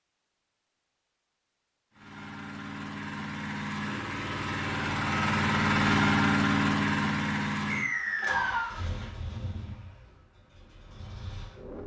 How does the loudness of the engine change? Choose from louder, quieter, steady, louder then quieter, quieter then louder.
louder then quieter.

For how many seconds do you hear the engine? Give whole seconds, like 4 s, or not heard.
10 s.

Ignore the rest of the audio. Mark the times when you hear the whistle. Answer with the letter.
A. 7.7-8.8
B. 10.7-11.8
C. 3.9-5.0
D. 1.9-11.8
A.